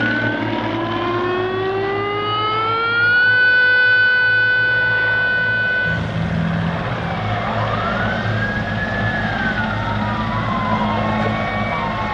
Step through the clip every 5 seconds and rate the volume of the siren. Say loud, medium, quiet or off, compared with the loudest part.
loud, medium, medium.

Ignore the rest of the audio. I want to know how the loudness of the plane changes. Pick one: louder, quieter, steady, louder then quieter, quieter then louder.
quieter then louder.